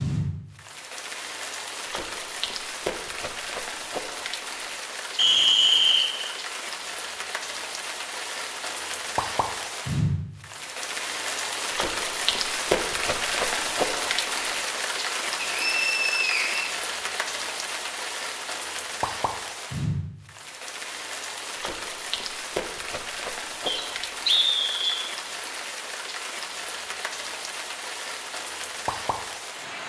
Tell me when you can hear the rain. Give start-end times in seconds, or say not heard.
0.0-29.8.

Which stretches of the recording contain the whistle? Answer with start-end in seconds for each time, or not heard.
5.2-6.3, 15.4-16.7, 23.6-25.1.